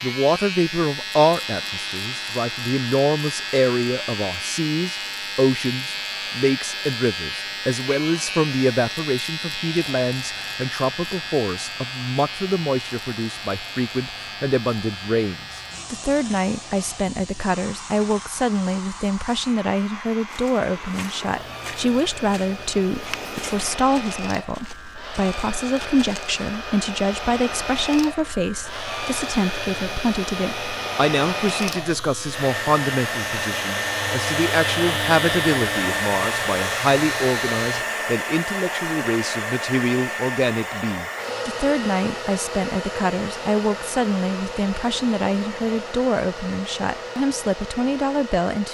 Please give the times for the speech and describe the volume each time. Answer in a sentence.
The speech can be heard from 0.0 to 48.6 s, at a steady volume.